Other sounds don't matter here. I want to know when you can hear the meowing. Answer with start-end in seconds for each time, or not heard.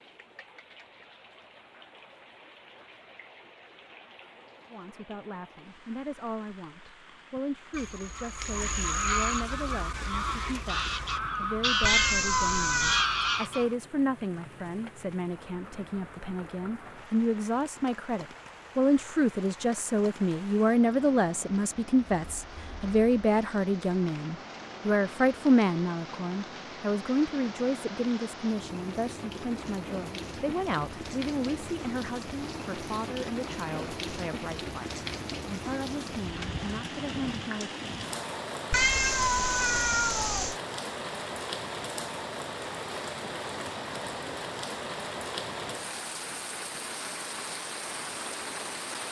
11.8-13.1, 38.7-40.5.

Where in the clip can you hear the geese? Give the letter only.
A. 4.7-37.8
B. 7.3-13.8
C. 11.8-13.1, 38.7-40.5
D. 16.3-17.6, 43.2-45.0
B.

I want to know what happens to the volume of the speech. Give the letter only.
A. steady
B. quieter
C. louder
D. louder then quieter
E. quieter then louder
D.